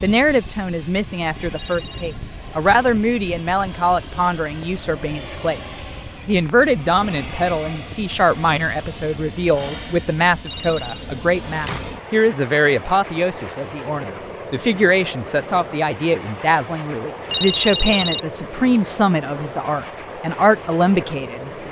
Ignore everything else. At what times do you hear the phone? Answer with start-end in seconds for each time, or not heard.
1.5-2.0, 10.4-11.1, 17.2-18.2.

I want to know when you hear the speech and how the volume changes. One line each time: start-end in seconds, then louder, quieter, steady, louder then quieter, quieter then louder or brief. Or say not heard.
0.0-21.6 steady.